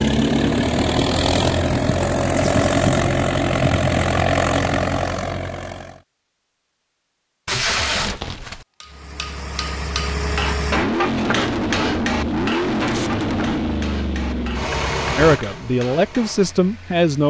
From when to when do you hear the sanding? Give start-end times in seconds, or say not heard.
not heard.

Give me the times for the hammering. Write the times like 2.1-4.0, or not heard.
8.8-16.5.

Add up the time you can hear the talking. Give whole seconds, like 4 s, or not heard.
2 s.